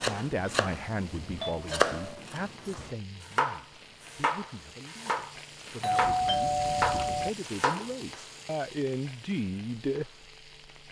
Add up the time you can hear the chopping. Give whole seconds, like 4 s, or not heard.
8 s.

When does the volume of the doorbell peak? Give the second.
6 s.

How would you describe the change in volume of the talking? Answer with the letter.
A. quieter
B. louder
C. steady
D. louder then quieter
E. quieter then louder
E.